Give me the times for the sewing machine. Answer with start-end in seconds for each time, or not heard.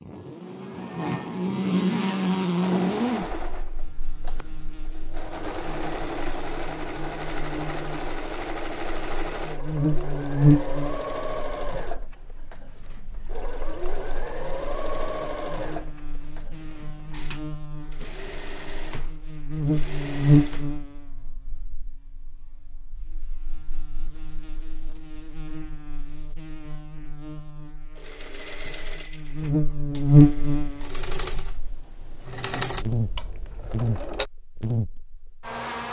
2.6-20.8, 27.9-34.3.